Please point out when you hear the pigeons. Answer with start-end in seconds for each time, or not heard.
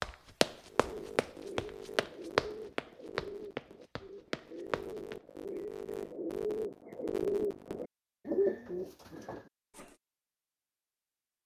0.7-9.9.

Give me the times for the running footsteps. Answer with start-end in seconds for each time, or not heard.
0.0-5.2.